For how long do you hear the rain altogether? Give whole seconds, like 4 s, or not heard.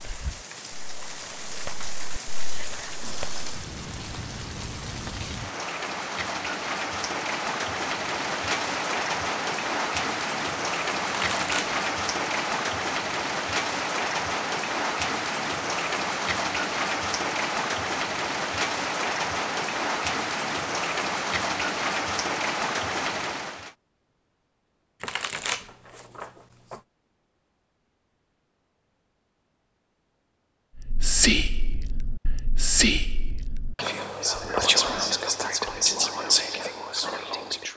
24 s.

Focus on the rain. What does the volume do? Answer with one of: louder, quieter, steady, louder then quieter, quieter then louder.
louder.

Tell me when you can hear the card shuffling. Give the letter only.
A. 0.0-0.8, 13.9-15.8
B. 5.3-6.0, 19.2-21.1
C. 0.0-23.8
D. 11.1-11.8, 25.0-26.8
D.